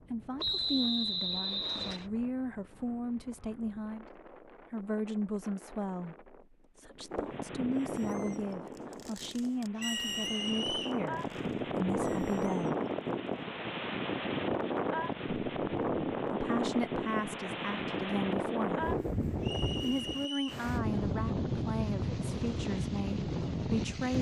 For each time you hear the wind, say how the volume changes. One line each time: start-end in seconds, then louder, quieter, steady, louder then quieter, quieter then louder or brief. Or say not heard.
0.0-24.1 louder.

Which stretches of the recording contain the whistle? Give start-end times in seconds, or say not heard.
0.3-2.0, 9.8-11.0, 19.4-20.6.